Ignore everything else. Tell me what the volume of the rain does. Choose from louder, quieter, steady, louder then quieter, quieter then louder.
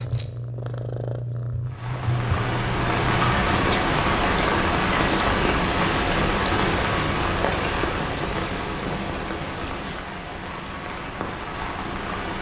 quieter.